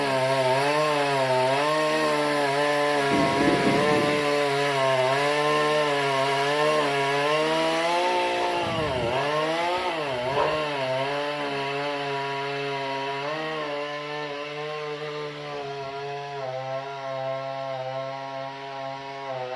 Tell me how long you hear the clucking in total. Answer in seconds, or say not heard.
not heard.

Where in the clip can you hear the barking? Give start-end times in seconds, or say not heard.
8.2-10.6.